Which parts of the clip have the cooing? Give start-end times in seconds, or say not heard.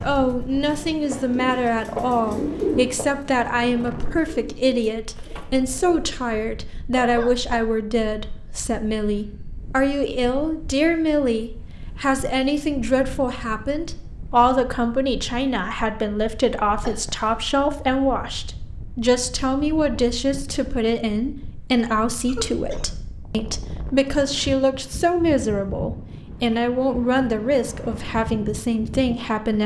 0.0-6.3.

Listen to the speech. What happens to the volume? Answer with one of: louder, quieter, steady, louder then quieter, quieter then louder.
steady.